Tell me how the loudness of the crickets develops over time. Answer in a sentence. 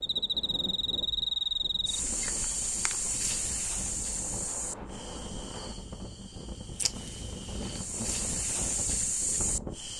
The volume of the crickets goes down, then up.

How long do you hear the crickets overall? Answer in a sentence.
The crickets can be heard for 10 seconds in total.